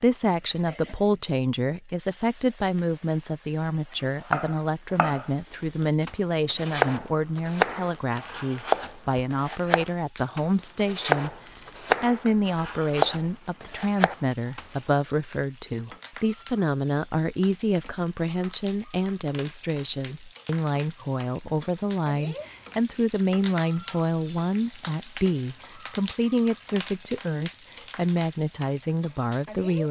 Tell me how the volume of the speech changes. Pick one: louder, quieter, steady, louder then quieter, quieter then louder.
steady.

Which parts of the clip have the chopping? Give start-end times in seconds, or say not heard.
4.3-14.7.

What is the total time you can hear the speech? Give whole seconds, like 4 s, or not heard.
30 s.